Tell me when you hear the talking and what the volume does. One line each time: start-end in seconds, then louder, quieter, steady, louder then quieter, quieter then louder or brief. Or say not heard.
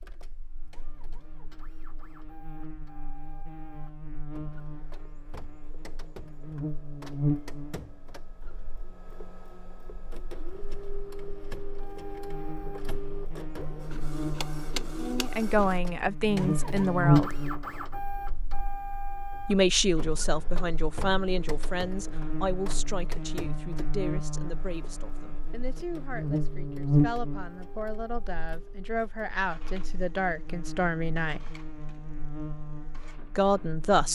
15.0-17.4 brief
19.4-31.5 quieter then louder
33.4-34.1 brief.